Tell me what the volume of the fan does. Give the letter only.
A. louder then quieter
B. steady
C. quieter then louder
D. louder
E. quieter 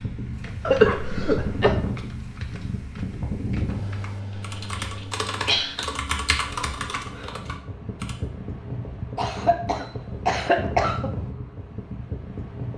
C.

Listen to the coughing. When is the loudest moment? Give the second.
1 s.